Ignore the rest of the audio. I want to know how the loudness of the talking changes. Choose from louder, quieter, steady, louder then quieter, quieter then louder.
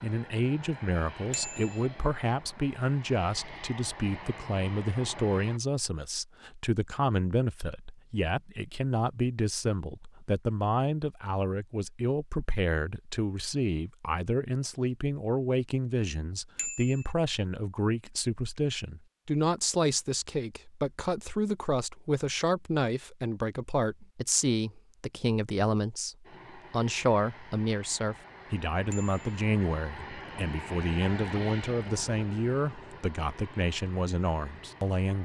steady.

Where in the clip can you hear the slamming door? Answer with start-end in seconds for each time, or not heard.
not heard.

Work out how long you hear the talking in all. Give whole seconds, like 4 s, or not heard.
35 s.